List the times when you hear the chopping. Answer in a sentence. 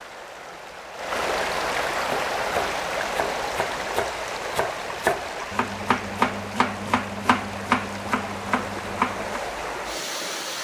The chopping can be heard from 2.0 to 9.4 s.